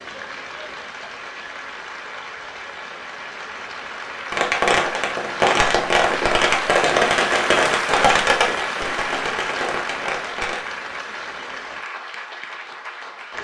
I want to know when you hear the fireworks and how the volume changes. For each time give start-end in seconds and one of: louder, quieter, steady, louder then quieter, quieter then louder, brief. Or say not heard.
4.3-10.6 quieter.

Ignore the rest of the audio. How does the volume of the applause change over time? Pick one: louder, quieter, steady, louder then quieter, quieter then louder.
louder then quieter.